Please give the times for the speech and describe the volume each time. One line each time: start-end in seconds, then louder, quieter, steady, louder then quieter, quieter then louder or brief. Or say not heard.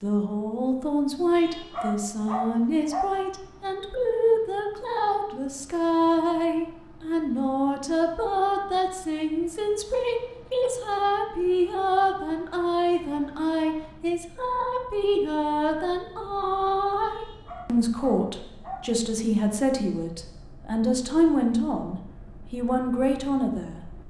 0.0-23.8 steady.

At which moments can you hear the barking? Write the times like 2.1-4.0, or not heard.
1.4-3.0, 17.1-18.9.